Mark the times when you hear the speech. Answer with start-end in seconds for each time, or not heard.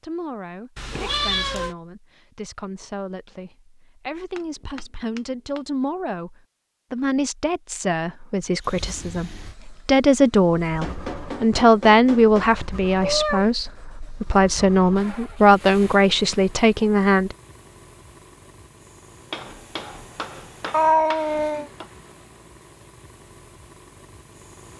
0.0-17.4.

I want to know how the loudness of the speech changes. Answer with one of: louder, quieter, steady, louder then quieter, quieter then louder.
louder.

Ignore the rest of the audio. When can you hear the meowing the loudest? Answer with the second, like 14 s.
21 s.